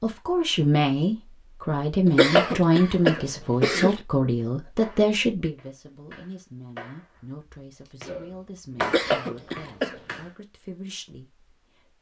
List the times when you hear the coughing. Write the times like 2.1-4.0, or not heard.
2.0-4.0, 8.8-10.0.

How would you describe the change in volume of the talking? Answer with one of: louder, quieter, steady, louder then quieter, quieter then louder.
quieter.